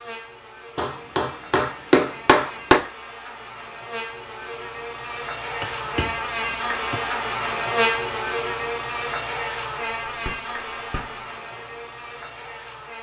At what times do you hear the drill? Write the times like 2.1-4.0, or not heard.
not heard.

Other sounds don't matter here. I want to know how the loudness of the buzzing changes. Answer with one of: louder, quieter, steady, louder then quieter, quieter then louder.
louder then quieter.